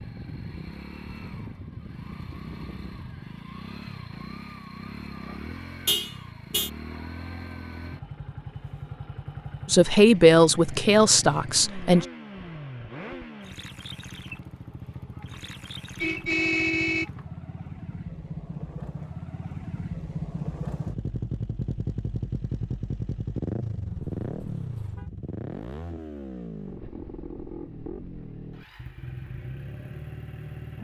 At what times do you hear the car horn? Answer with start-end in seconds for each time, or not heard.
5.8-6.7, 16.0-17.1, 23.9-25.1.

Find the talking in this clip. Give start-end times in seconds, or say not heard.
9.7-12.1.